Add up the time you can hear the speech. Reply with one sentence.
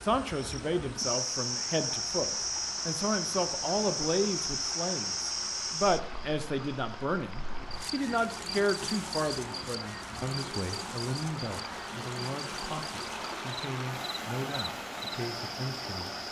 You can hear the speech for 16 seconds altogether.